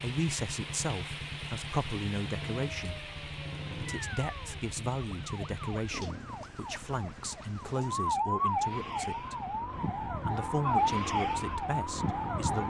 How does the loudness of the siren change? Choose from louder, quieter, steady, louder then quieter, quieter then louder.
louder.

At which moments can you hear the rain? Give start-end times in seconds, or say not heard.
0.0-8.1.